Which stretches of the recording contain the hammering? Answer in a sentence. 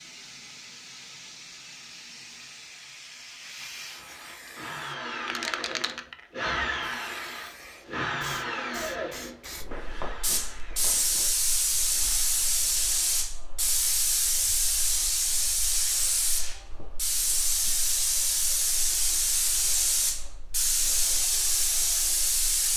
The hammering can't be heard in this clip.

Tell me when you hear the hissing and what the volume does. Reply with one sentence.
You can hear the hissing from 0.0 to 22.7 s, getting louder.